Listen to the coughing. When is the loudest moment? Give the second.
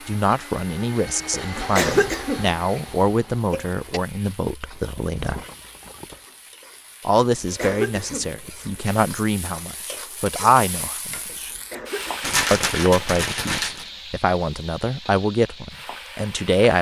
2 s.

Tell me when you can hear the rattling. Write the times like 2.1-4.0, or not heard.
4.7-6.2, 12.2-13.9.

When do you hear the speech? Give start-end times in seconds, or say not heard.
0.1-5.4, 7.0-11.5, 12.5-16.7.